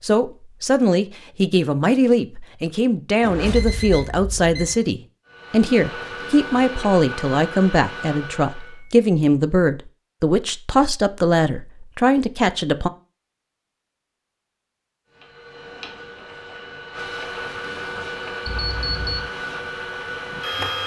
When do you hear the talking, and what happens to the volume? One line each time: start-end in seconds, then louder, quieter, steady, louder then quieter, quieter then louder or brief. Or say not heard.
0.0-12.9 steady.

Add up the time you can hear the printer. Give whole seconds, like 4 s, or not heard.
9 s.